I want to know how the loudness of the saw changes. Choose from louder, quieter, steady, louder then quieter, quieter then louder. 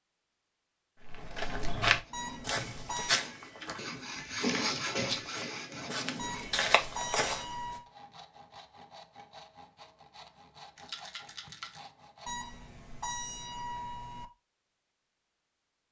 louder then quieter.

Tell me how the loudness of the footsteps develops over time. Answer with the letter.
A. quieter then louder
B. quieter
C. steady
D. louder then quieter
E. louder
A.